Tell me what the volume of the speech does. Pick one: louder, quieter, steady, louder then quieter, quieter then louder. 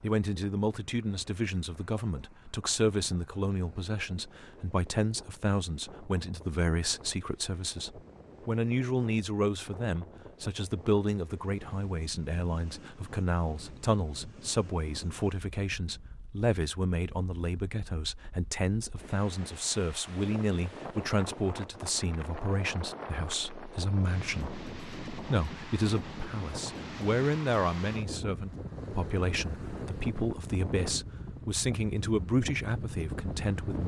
steady.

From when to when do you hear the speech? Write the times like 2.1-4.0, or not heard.
0.0-33.8.